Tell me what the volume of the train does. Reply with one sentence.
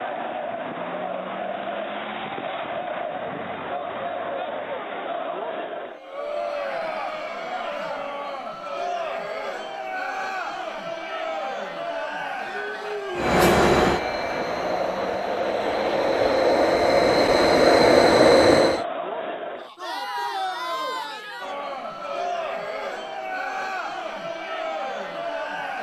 The volume of the train goes down, then up.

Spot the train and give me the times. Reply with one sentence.
The train can be heard from 13.2 to 18.9 s.